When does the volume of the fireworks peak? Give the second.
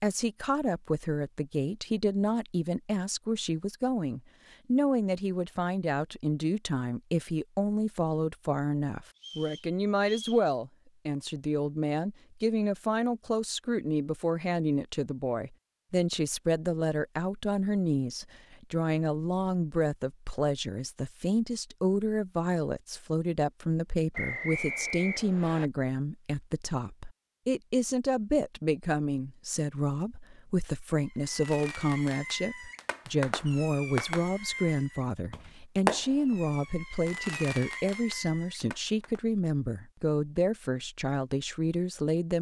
36 s.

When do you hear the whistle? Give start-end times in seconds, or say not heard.
9.2-10.4, 24.1-25.6.